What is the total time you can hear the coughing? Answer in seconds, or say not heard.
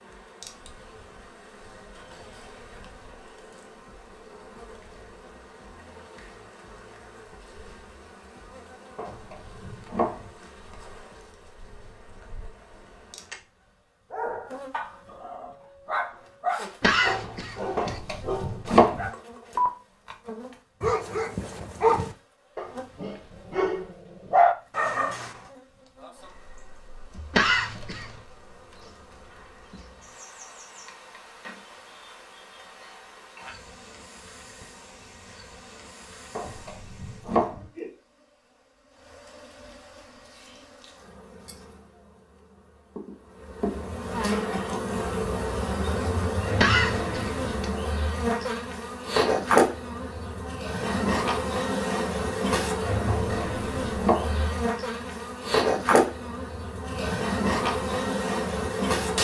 3 s.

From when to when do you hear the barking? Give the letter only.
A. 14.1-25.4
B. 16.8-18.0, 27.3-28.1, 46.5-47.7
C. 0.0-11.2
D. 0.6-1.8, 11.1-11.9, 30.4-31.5
A.